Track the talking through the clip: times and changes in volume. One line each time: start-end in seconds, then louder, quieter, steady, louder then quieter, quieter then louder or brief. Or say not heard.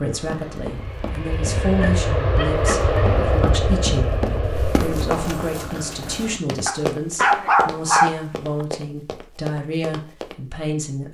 0.0-11.0 steady.